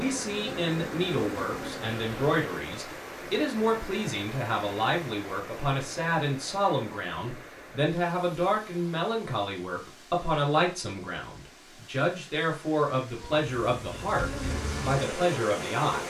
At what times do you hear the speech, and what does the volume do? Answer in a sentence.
The speech can be heard from 0.0 to 16.0 s, at a steady volume.